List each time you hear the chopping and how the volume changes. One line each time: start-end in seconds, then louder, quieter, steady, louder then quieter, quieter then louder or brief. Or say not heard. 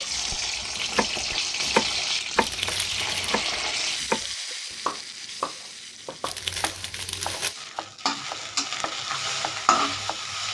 0.1-10.2 quieter.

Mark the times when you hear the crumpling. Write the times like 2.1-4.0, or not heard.
2.4-3.3, 6.2-7.5.